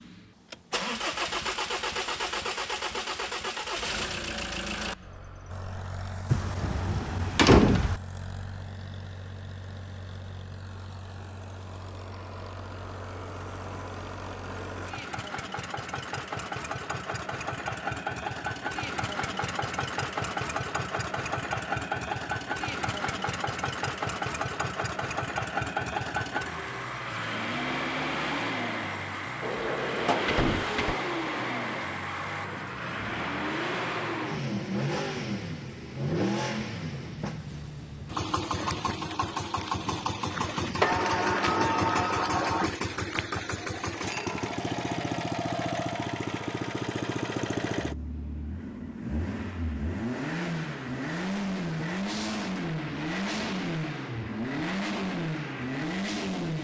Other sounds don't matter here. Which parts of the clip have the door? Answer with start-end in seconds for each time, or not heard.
6.3-8.0, 29.4-30.9, 40.8-42.8.